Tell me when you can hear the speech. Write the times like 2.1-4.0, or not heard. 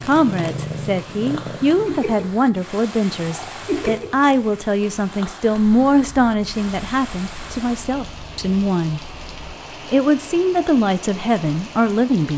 0.0-9.1, 9.8-12.3.